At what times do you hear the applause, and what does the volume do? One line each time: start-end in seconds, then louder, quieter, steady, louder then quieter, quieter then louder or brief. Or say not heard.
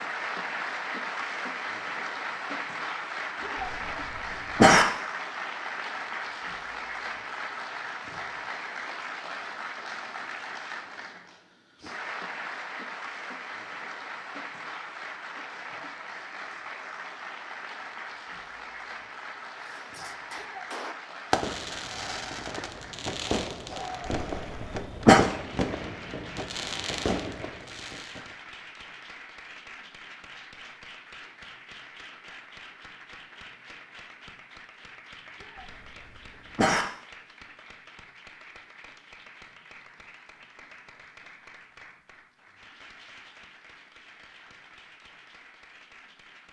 0.0-46.4 quieter.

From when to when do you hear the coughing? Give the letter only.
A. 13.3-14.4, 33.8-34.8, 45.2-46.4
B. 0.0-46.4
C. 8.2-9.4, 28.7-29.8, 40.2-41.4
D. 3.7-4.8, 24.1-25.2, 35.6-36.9
D.